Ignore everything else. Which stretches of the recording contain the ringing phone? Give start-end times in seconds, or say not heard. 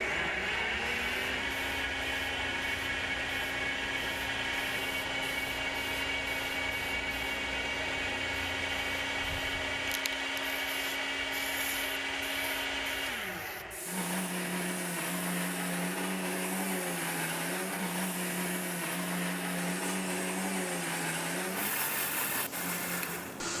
not heard.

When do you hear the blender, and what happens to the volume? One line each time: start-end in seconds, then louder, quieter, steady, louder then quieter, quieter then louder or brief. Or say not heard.
0.0-23.5 steady.